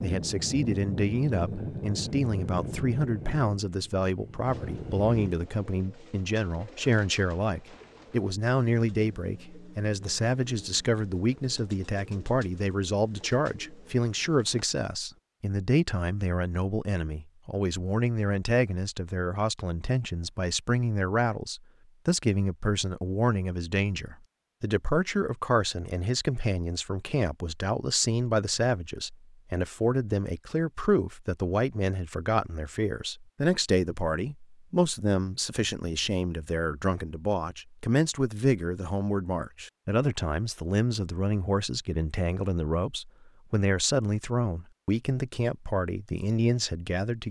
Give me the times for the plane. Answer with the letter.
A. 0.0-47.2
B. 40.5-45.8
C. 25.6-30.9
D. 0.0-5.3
D.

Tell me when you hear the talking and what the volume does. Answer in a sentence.
You can hear the talking from 0.0 to 47.2 s, at a steady volume.